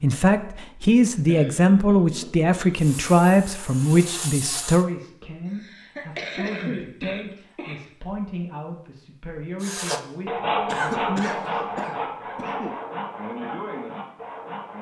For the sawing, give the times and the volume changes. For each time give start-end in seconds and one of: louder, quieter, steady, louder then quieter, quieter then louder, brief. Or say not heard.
2.8-4.8 brief
9.6-14.7 quieter.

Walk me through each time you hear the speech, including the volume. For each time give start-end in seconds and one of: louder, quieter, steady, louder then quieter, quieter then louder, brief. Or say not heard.
0.0-11.9 quieter.